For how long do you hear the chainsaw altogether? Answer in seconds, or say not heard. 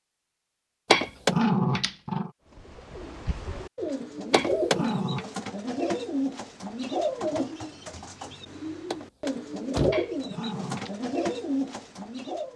not heard.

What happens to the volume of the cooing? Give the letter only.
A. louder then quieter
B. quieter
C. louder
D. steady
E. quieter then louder
D.